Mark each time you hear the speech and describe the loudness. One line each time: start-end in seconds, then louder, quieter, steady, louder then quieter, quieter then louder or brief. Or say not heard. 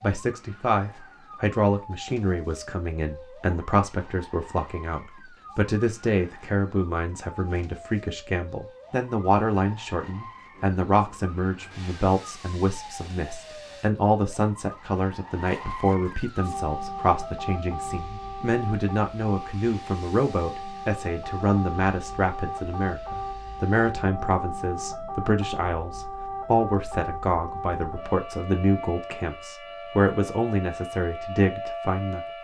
0.0-32.2 steady.